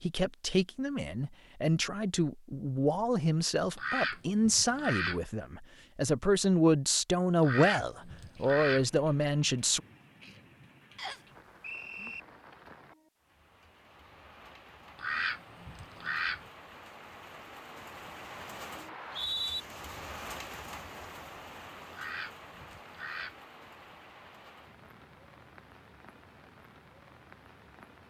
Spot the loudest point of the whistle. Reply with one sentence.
The volume of the whistle peaks at 19 seconds.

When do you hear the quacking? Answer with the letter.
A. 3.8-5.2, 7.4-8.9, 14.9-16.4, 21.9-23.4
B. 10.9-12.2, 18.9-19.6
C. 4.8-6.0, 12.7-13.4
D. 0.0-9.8
A.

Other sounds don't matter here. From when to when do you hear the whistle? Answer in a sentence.
You can hear the whistle from 10.9 to 12.2 s and from 18.9 to 19.6 s.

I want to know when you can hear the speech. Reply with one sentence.
The speech can be heard from 0.0 to 9.8 s.